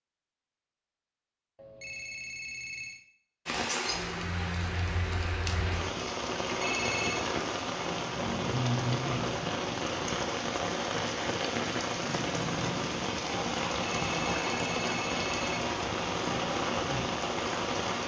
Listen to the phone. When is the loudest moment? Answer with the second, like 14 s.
7 s.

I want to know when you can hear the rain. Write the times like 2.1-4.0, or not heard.
3.5-18.0.